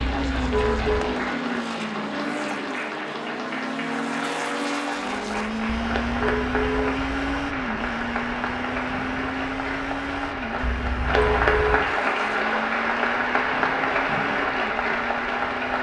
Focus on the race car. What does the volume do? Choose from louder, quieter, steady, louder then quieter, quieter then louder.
quieter.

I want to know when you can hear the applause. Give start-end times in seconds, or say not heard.
0.0-15.7.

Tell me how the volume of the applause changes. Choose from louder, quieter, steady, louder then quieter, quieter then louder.
louder.